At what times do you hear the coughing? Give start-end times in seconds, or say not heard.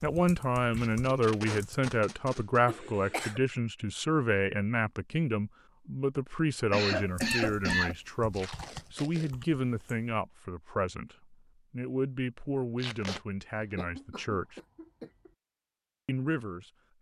2.6-3.4, 6.7-8.0, 13.6-15.3.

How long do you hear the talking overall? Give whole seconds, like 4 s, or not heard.
15 s.